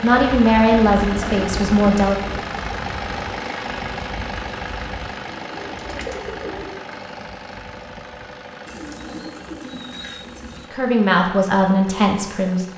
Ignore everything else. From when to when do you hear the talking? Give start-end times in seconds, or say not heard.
0.0-2.4, 10.7-12.7.